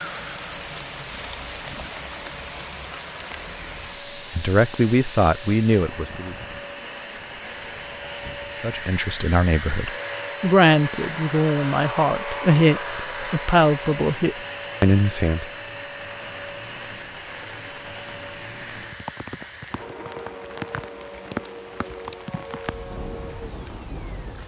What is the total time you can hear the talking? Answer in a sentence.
The talking can be heard for 9 seconds in total.